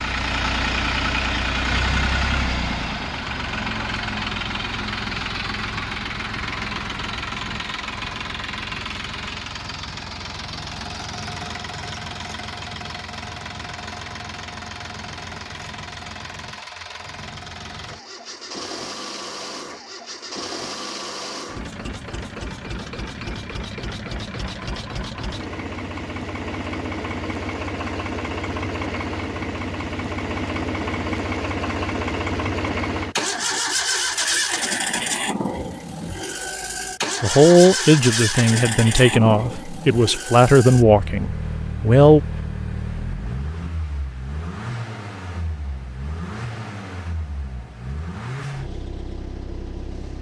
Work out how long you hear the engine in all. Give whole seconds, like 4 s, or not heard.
50 s.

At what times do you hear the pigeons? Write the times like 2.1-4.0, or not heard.
not heard.